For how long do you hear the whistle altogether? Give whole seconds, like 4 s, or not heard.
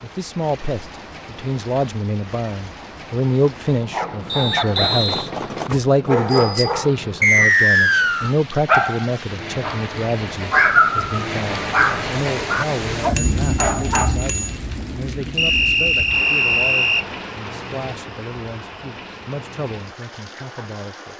4 s.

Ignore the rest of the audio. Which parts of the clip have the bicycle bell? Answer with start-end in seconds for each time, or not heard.
4.8-6.8, 13.2-14.6.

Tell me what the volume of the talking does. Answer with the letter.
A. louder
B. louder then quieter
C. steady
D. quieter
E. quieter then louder
D.